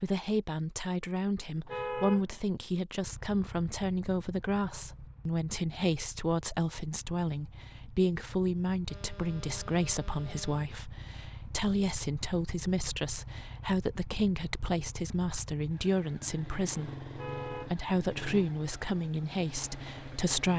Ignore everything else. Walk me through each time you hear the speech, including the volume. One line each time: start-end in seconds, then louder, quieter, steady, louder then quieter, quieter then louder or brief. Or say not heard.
0.0-20.5 steady.